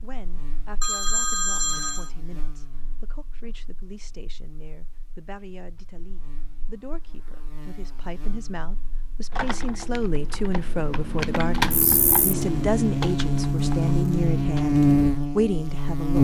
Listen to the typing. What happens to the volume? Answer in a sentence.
The volume of the typing goes up, then down.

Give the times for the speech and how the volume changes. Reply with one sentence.
You can hear the speech from 0.0 to 16.1 s, getting louder.